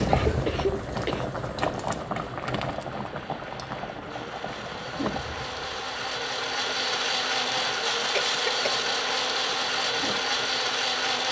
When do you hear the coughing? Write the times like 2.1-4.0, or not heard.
0.1-1.4, 8.1-8.8.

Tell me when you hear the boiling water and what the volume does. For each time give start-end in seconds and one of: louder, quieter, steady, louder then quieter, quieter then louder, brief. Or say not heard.
0.0-11.2 quieter.